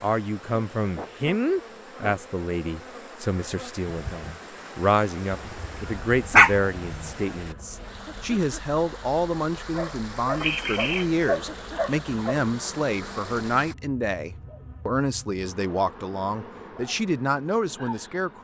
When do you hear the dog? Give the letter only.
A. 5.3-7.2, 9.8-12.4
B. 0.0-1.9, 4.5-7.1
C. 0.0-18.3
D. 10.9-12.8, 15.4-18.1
A.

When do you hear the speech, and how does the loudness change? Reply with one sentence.
You can hear the speech from 0.0 to 18.3 s, at a steady volume.